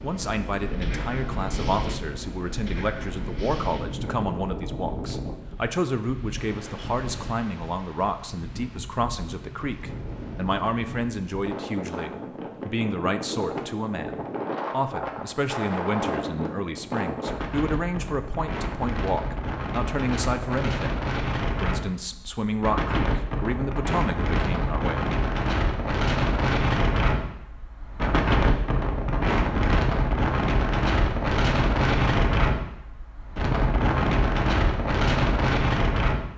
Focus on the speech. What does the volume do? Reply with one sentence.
The loudness of the speech stays about the same.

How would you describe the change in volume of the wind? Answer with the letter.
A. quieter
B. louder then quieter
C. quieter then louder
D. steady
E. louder
E.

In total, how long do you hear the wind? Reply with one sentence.
You can hear the wind for 36 seconds altogether.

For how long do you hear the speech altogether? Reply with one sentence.
The speech can be heard for 25 seconds in total.